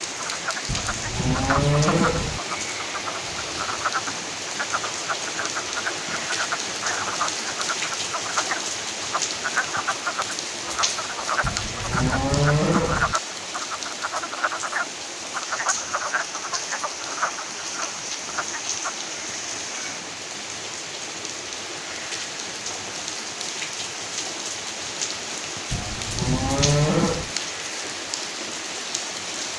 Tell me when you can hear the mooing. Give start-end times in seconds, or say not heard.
0.7-2.4, 11.4-13.2, 25.7-27.4.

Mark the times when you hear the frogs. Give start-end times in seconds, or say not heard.
0.0-18.9.